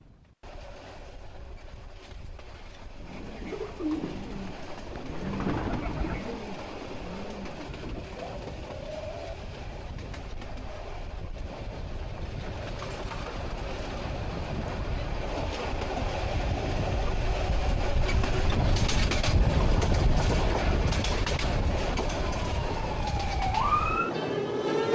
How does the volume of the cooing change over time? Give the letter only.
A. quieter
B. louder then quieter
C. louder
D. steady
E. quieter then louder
A.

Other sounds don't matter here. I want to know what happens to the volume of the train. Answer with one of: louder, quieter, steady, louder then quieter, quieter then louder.
louder.